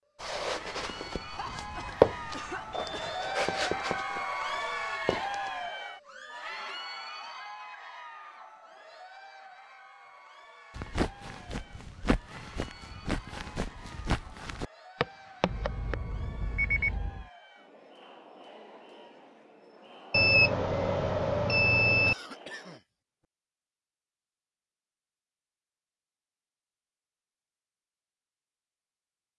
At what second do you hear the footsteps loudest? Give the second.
2 s.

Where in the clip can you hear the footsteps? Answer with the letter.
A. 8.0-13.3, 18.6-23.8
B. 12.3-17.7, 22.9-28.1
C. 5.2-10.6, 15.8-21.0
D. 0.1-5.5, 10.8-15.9
D.